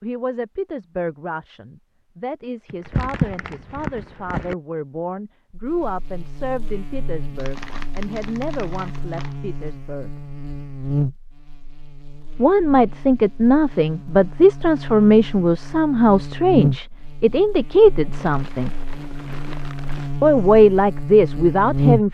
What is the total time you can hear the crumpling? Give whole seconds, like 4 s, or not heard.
6 s.